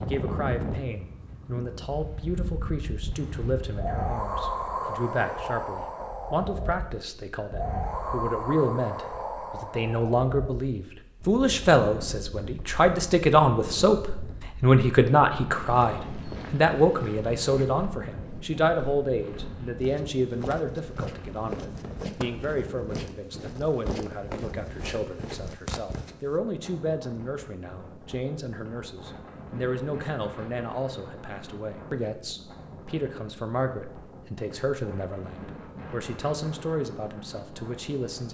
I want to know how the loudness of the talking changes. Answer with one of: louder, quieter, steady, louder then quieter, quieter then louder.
louder then quieter.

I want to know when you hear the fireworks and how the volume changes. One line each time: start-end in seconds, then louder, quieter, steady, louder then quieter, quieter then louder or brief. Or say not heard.
not heard.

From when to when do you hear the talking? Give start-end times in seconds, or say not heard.
0.0-38.2.